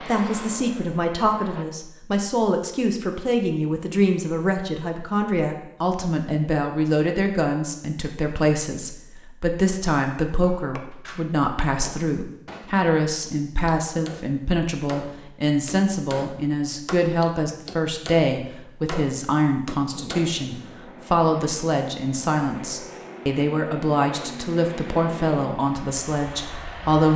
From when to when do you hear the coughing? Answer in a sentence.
You can't hear the coughing here.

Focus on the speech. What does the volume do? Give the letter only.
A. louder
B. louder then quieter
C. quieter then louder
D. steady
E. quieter
D.